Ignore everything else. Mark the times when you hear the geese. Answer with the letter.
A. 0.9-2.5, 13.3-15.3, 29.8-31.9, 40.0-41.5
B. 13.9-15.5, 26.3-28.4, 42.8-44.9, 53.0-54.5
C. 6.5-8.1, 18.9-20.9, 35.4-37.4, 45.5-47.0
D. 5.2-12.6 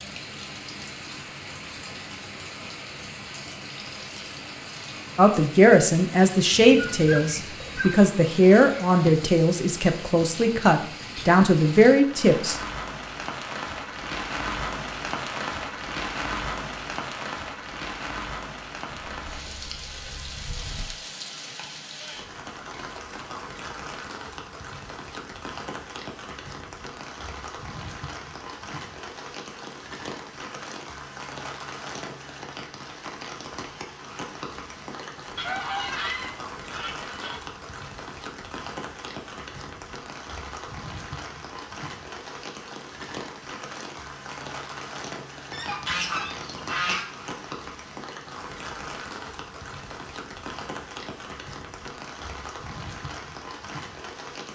C.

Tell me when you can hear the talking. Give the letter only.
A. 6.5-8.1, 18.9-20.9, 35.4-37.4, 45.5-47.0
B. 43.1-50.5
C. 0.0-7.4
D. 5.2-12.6
D.